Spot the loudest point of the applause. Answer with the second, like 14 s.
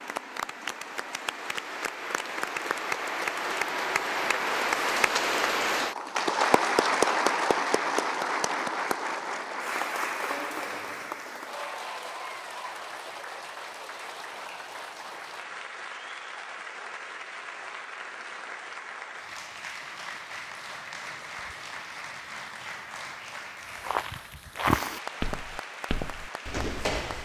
7 s.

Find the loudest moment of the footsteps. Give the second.
25 s.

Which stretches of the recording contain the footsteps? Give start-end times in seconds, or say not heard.
23.8-27.2.